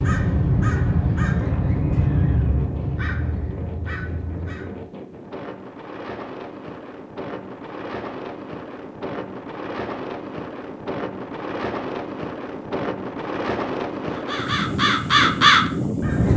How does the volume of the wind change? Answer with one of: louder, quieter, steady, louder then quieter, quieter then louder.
louder.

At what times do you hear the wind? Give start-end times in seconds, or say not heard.
0.2-16.3.